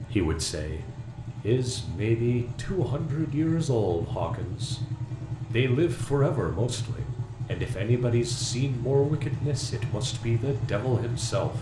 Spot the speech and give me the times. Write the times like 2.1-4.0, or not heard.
0.1-4.8, 5.5-11.5.